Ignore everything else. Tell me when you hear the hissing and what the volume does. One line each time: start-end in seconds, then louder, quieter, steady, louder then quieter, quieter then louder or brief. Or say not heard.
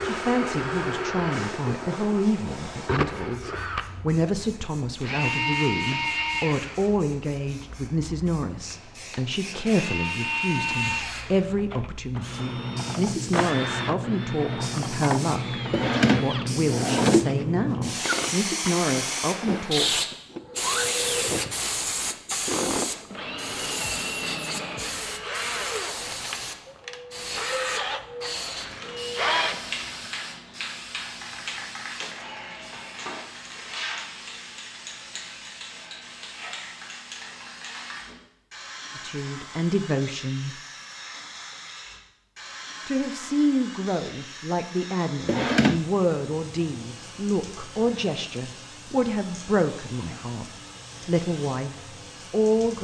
0.0-52.7 louder then quieter.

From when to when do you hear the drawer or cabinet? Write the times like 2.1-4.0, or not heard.
15.7-17.3, 45.2-45.9.